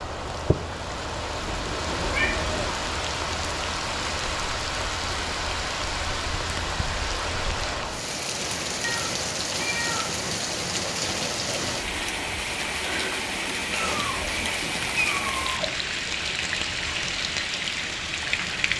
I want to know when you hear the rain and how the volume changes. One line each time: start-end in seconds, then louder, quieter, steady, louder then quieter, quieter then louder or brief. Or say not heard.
0.0-18.7 steady.